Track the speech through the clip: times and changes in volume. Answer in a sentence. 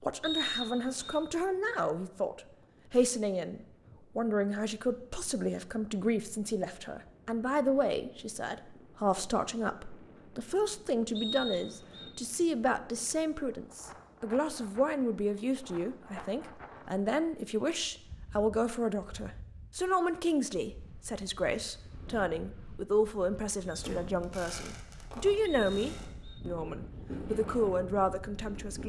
The speech can be heard from 0.0 to 28.8 s, at a steady volume.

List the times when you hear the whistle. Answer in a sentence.
The whistle can be heard from 0.2 to 1.2 s, from 11.2 to 12.1 s and from 25.4 to 26.4 s.